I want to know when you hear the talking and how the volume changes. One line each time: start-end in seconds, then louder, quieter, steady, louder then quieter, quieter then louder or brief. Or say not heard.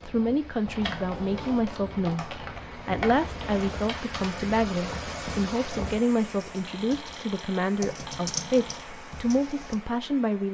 0.0-10.4 steady.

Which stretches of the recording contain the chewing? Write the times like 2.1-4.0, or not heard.
not heard.